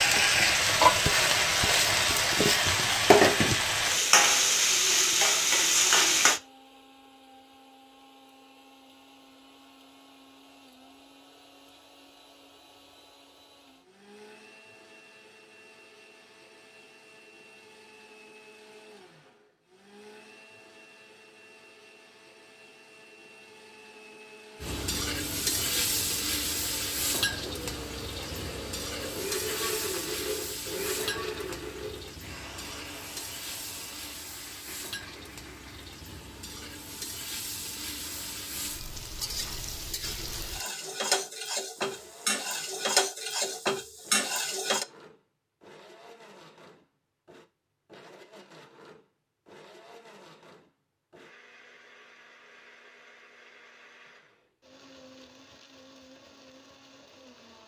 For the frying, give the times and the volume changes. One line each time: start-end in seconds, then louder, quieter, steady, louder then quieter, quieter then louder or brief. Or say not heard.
0.0-6.4 steady
24.6-44.9 quieter then louder.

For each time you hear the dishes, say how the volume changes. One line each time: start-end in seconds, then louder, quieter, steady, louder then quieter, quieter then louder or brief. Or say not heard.
not heard.